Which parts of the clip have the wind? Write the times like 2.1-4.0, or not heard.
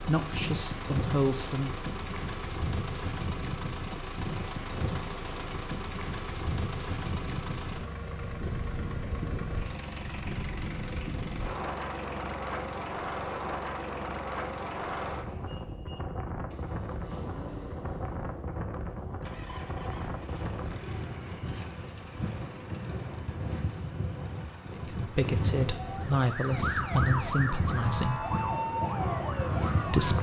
0.0-30.1.